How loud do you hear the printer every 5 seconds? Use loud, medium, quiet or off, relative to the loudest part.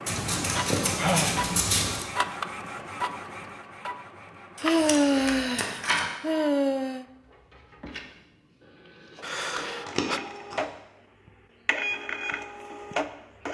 loud, medium, loud.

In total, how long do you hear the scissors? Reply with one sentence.
You can hear the scissors for 4 seconds altogether.